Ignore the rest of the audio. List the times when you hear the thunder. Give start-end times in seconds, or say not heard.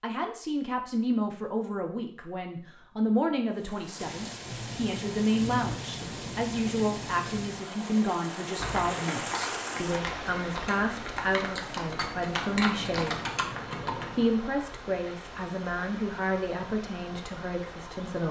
4.0-7.7.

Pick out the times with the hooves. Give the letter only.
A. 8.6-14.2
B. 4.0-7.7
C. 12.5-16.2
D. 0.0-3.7
A.